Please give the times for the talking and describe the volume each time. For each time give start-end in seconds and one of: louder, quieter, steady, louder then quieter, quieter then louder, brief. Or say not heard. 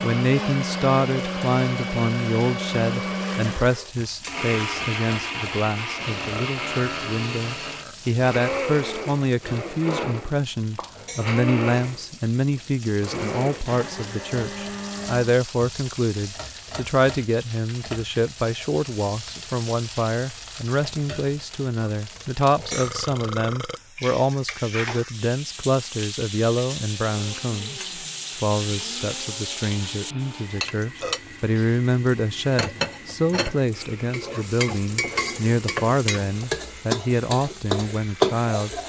0.0-38.8 steady.